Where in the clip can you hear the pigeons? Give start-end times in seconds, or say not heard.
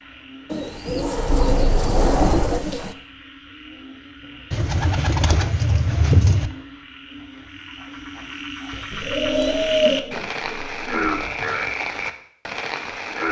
0.5-3.0, 4.5-6.5, 8.9-11.2.